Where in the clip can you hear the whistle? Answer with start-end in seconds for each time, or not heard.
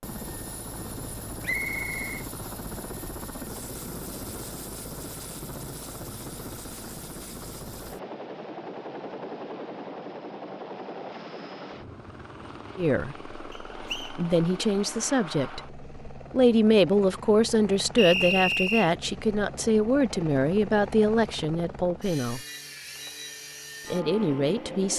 1.4-2.2, 13.5-14.2, 17.9-18.9.